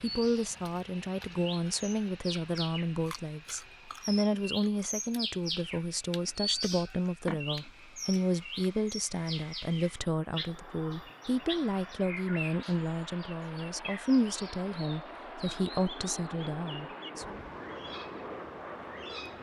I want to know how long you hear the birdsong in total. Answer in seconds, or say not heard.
19 s.